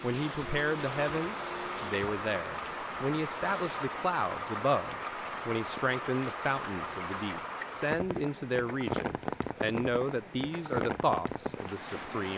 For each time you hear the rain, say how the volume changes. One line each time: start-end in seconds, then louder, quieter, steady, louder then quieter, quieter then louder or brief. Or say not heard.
0.0-12.3 steady.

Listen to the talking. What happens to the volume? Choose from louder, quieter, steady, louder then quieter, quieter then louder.
steady.